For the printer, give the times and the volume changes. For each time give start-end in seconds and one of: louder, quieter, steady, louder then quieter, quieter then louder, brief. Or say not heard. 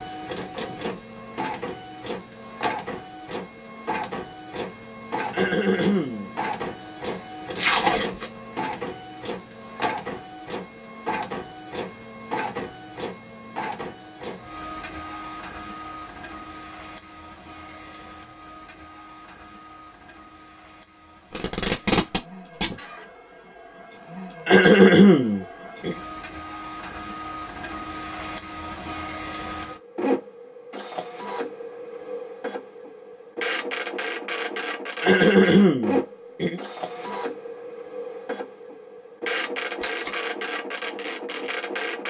0.0-42.0 quieter then louder.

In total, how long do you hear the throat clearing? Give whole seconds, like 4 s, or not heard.
4 s.